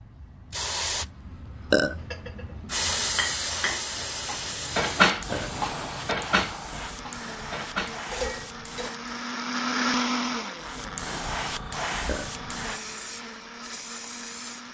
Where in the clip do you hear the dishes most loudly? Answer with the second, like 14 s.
5 s.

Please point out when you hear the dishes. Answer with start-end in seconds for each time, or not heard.
1.9-2.5, 3.1-8.9.